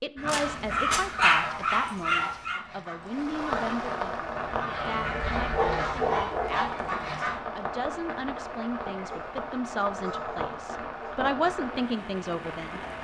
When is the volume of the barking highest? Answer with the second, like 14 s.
1 s.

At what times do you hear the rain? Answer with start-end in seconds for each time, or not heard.
3.0-12.9.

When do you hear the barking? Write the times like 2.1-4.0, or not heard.
0.2-2.6, 5.3-6.8, 9.1-11.2.